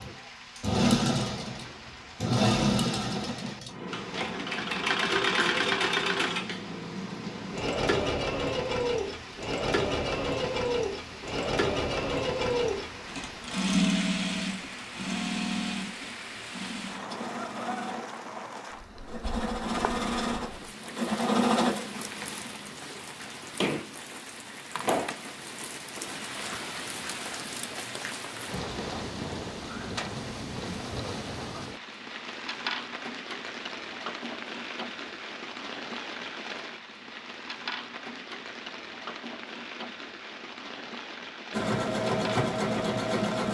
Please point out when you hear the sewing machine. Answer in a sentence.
You can hear the sewing machine from 0.0 to 22.5 s and from 41.5 to 43.4 s.